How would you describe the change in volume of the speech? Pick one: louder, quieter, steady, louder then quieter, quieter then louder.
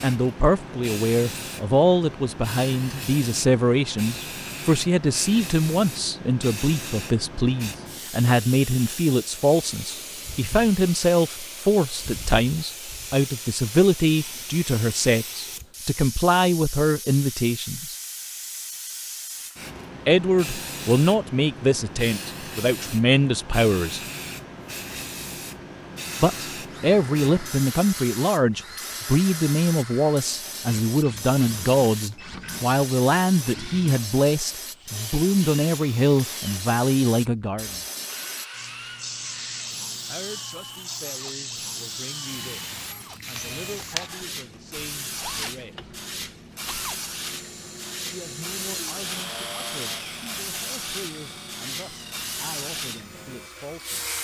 quieter.